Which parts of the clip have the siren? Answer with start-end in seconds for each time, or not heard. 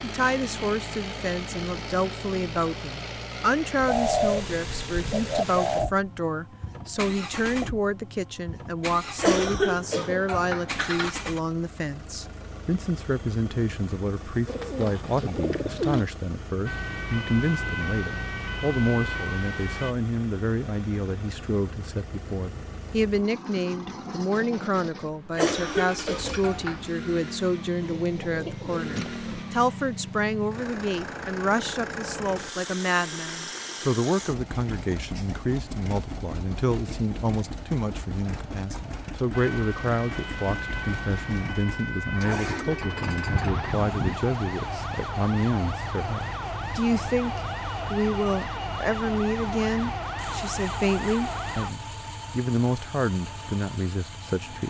16.6-19.9, 39.3-51.7.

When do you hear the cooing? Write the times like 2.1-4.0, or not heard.
3.8-5.9, 14.4-16.1, 27.8-29.4, 42.3-44.2.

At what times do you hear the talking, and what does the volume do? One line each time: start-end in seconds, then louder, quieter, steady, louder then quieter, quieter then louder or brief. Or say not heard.
0.0-54.6 steady.